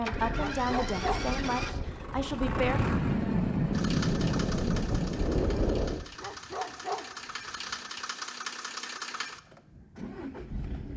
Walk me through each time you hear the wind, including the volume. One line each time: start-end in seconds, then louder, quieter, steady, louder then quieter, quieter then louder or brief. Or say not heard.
0.0-6.0 louder.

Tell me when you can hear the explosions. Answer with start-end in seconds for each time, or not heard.
2.5-5.3.